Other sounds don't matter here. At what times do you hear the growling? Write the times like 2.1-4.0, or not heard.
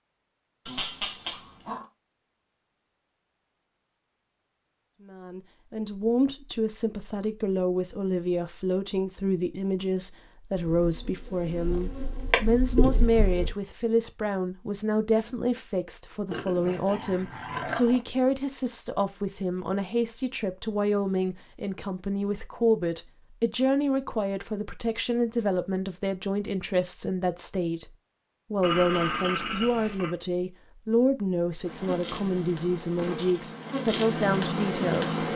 0.7-1.9, 16.3-18.1, 28.6-30.1.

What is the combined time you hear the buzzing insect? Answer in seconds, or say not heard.
7 s.